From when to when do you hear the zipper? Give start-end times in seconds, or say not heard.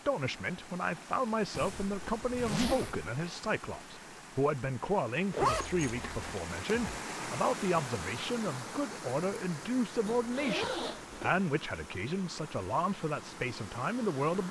1.6-3.1, 5.3-7.0, 10.0-11.3.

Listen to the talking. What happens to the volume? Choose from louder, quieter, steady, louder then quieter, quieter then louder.
steady.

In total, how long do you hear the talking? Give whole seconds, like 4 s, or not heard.
14 s.